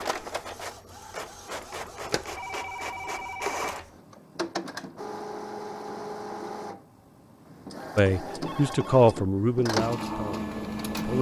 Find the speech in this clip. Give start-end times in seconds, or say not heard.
8.0-11.1.